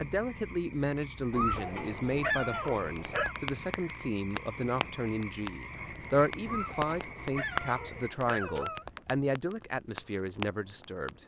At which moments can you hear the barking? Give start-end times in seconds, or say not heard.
1.3-3.4, 6.5-8.8.